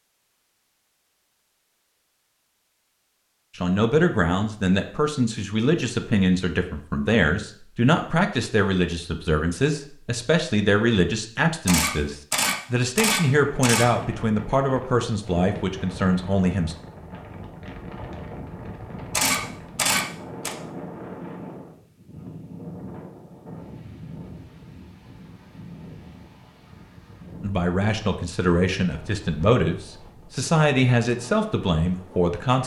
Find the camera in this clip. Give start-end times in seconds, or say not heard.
11.7-13.8, 19.1-20.6.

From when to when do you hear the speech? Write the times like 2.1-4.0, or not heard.
3.5-16.8, 27.4-32.6.